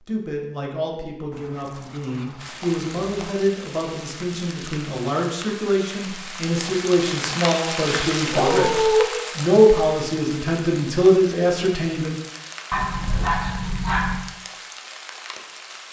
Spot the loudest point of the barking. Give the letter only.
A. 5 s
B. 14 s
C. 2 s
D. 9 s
D.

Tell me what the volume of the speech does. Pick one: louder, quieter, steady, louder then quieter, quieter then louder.
louder.